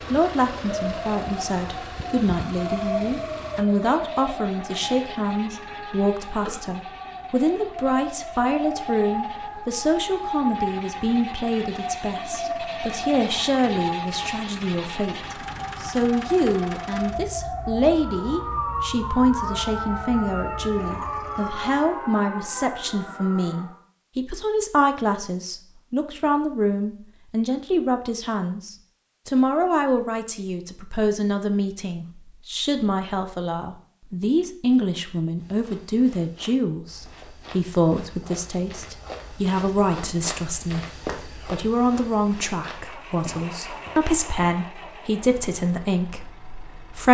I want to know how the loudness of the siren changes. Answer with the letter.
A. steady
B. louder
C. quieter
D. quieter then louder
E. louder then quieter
A.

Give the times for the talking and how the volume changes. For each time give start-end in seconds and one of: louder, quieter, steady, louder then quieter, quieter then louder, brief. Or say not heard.
0.1-47.0 steady.